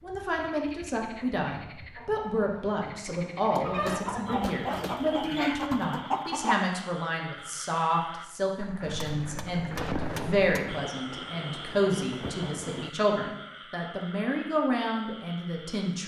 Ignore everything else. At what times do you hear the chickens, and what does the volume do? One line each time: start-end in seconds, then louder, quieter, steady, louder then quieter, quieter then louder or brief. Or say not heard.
1.5-6.6 louder.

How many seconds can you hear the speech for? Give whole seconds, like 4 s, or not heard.
16 s.